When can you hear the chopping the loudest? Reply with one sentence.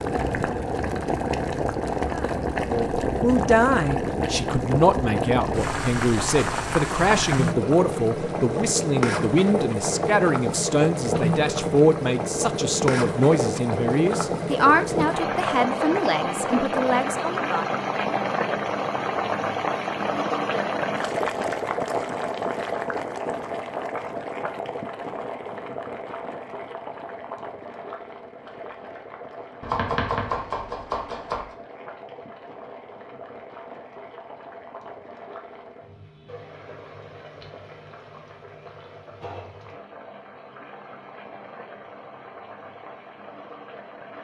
The loudest moment of the chopping is at 30 seconds.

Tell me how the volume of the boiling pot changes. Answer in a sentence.
The loudness of the boiling pot goes down.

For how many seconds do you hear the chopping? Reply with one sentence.
The chopping can be heard for 2 seconds in total.